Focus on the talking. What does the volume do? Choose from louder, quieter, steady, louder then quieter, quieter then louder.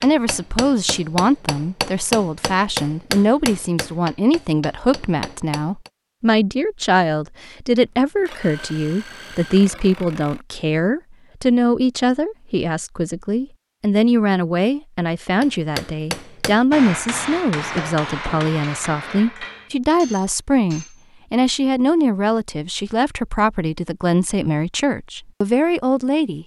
steady.